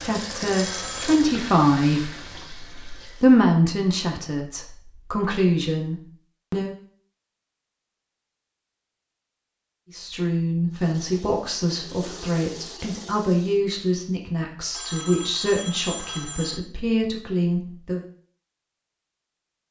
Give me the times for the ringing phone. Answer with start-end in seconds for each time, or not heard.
0.5-1.1, 14.7-16.6.